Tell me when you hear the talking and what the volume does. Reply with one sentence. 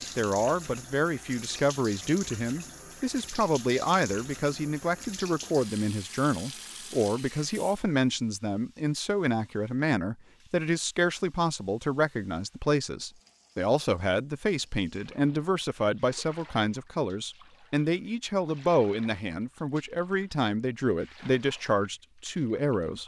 You can hear the talking from 0.0 to 23.0 s, at a steady volume.